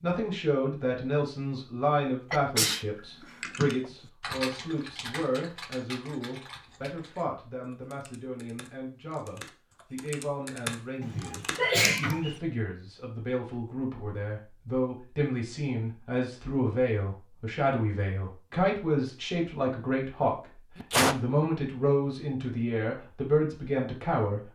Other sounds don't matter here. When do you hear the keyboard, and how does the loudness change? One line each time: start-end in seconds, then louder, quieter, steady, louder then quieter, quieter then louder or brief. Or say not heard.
3.0-12.2 quieter then louder.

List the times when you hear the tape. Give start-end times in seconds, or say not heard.
not heard.